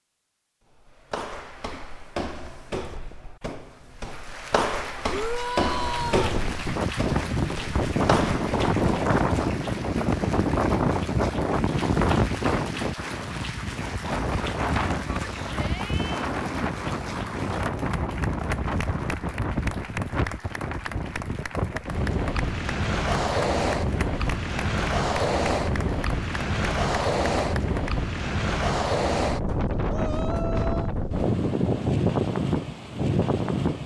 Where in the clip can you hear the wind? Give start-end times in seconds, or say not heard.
6.0-33.8.